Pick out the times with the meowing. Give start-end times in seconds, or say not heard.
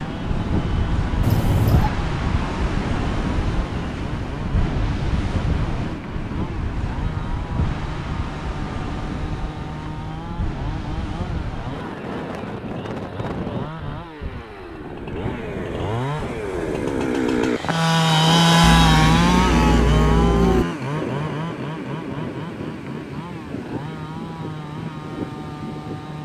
1.2-1.9, 18.6-20.6.